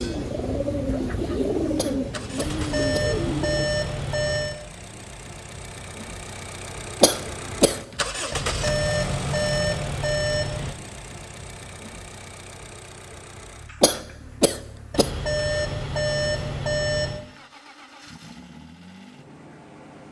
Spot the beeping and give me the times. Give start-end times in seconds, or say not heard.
2.4-4.6, 8.3-10.8, 14.9-17.2.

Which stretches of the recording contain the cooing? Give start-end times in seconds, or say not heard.
0.0-3.7.